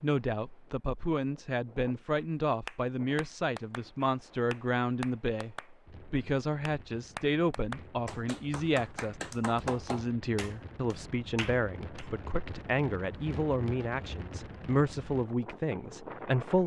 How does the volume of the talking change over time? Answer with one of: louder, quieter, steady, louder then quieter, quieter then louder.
steady.